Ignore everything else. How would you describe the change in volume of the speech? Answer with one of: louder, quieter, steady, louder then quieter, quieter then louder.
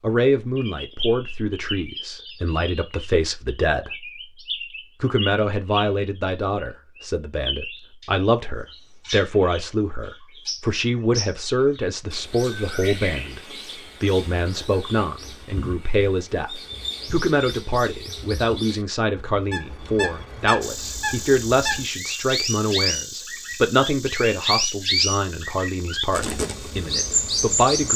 steady.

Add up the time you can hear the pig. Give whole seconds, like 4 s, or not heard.
not heard.